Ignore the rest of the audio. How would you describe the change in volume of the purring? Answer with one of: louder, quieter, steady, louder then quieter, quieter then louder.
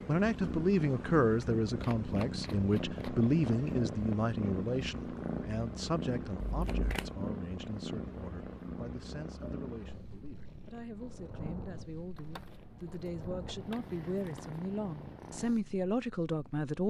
quieter.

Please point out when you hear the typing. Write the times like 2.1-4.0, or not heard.
not heard.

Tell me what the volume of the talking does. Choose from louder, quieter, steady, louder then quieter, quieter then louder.
quieter then louder.